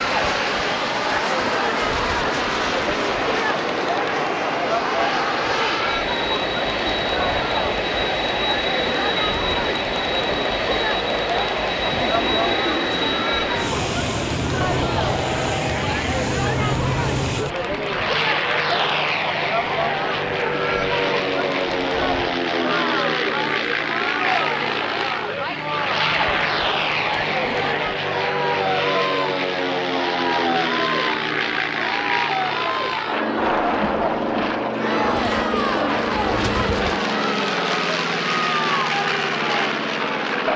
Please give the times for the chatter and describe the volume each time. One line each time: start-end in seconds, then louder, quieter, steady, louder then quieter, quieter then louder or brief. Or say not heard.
0.0-40.5 steady.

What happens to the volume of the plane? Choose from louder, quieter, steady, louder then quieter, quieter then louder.
steady.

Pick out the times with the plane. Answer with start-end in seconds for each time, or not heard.
0.0-40.5.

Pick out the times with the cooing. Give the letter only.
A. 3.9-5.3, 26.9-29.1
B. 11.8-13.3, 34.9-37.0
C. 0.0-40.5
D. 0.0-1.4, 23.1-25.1
B.